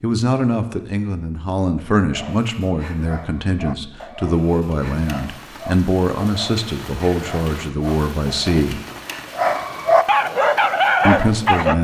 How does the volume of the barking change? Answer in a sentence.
The loudness of the barking goes up.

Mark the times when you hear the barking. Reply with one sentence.
You can hear the barking from 2.1 to 11.7 s.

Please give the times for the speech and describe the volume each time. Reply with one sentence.
You can hear the speech from 0.0 to 8.8 s, at a steady volume; and briefly from 11.1 to 11.7 s.